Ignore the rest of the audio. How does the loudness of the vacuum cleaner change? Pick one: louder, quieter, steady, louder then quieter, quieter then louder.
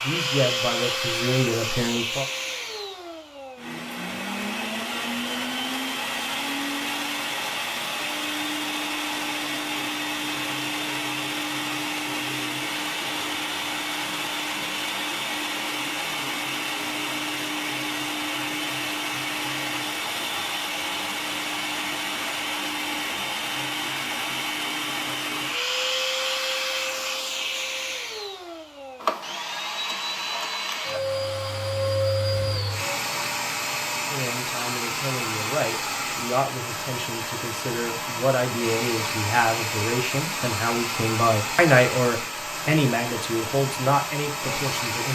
steady.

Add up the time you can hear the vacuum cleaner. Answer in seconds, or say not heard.
45 s.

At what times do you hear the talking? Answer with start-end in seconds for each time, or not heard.
0.0-2.2, 34.0-45.0.